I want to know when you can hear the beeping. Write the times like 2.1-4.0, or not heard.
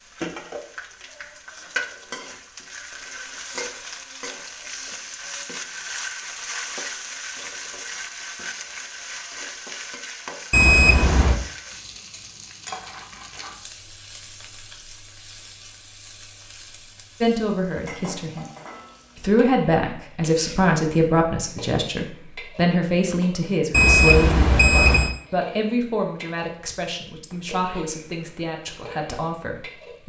10.5-11.4, 23.7-25.1.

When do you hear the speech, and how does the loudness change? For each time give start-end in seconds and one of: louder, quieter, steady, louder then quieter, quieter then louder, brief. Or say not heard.
17.2-18.4 brief
19.1-30.0 quieter.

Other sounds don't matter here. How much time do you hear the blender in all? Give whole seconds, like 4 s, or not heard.
not heard.